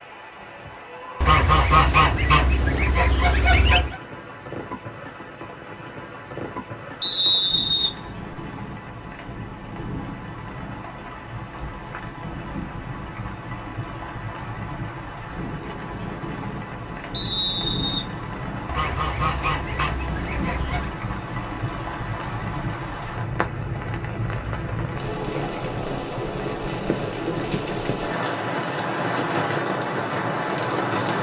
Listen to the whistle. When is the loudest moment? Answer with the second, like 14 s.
7 s.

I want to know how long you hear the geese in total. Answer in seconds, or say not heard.
5 s.